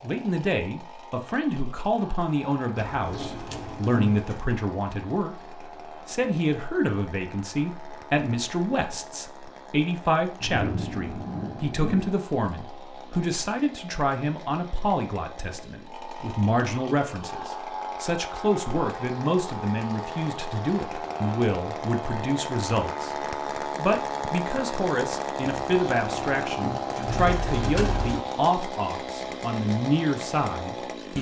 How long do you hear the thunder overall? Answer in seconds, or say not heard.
2 s.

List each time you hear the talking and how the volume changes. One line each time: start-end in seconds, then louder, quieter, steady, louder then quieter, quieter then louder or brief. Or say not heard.
0.0-31.1 steady.